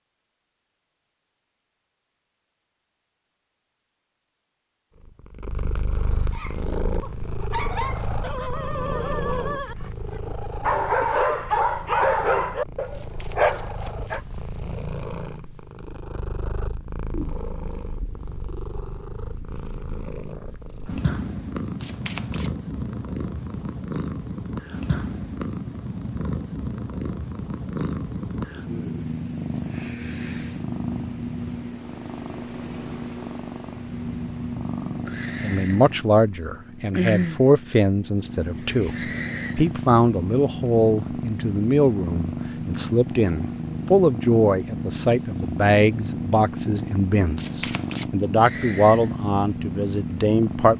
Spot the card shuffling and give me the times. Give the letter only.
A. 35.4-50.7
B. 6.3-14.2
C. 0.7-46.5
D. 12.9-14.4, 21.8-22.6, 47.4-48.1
D.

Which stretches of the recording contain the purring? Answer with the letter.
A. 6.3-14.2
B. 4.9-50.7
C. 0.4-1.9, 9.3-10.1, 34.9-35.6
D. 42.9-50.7
B.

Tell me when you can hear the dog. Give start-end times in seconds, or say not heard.
6.3-14.2.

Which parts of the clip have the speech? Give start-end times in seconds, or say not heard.
35.4-50.7.